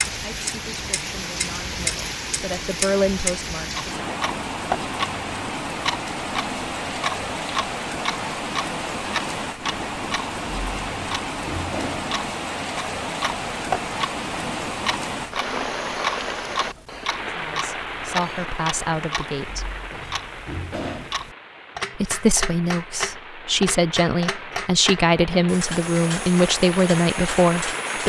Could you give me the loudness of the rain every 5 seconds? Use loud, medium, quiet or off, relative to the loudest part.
loud, loud, loud, loud, medium, loud.